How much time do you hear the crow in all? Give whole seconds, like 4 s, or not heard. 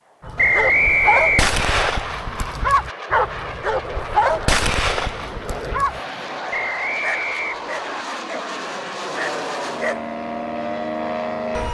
not heard.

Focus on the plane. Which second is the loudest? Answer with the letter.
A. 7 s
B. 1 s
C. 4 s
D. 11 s
D.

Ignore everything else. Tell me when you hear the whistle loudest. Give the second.
1 s.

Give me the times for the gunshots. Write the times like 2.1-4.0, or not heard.
not heard.